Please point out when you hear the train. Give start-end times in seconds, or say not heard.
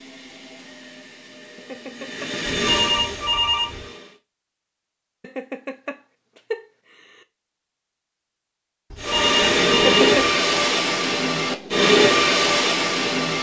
0.0-4.2, 8.9-13.3.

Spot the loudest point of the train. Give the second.
12 s.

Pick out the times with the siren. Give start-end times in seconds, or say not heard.
not heard.